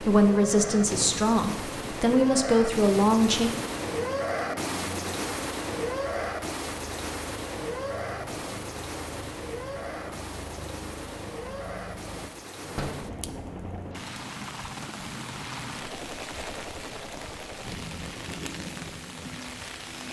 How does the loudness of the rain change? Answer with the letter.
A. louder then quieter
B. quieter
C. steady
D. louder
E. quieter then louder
B.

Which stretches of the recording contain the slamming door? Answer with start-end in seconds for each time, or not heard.
0.7-1.2, 12.8-13.2.